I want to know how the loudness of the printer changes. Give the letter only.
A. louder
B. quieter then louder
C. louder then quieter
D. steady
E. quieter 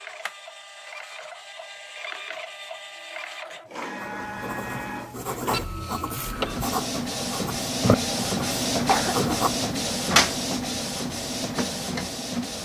A.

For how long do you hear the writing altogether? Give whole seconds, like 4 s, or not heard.
6 s.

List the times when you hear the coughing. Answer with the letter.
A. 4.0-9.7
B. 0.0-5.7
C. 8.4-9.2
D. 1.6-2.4
C.